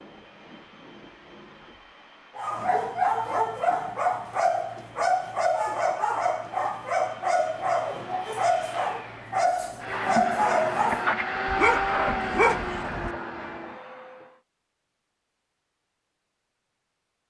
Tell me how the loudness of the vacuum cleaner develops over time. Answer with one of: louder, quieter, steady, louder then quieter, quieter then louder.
louder.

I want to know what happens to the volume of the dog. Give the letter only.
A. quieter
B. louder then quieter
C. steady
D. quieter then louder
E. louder
C.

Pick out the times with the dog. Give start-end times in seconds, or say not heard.
2.4-13.1.